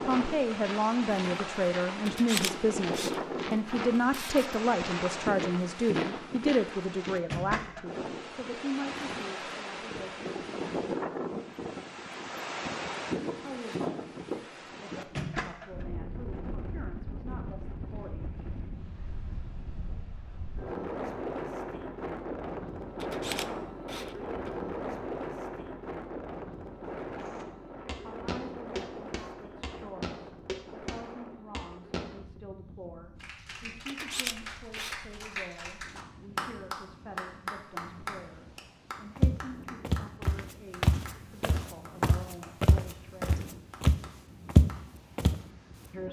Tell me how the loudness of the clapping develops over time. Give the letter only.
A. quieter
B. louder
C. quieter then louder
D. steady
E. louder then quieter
E.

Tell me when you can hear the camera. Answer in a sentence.
The camera can be heard from 2.0 to 4.5 s, from 23.0 to 24.5 s and from 33.9 to 35.0 s.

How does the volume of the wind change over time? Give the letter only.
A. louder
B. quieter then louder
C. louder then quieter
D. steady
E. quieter
E.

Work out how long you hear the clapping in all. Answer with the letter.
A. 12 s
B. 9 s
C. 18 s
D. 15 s
A.